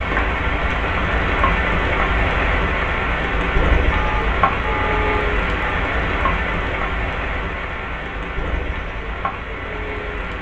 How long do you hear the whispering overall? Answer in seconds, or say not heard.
not heard.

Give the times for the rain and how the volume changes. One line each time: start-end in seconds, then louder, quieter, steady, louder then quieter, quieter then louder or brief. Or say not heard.
0.0-10.3 quieter.